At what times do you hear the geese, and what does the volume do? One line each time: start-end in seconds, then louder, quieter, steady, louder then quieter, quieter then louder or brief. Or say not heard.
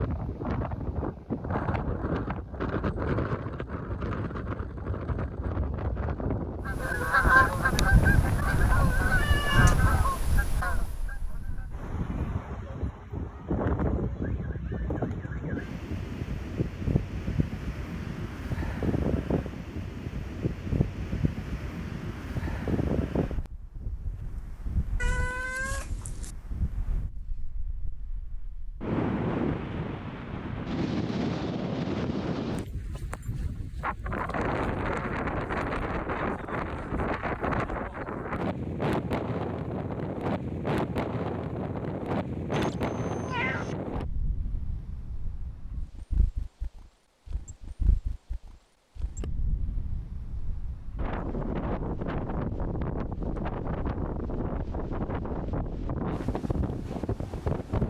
6.6-12.6 quieter.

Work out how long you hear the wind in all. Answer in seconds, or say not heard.
58 s.